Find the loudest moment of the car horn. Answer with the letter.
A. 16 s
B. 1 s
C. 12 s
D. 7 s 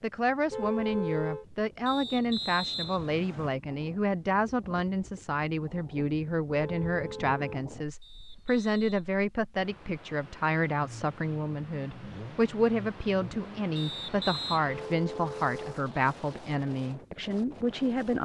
B.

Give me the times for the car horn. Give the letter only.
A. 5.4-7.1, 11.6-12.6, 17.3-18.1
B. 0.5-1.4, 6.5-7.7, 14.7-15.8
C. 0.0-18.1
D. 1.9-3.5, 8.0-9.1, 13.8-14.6
B.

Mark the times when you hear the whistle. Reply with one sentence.
The whistle can be heard from 1.9 to 3.5 s, from 8.0 to 9.1 s and from 13.8 to 14.6 s.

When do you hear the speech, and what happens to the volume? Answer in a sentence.
The speech can be heard from 0.0 to 18.1 s, at a steady volume.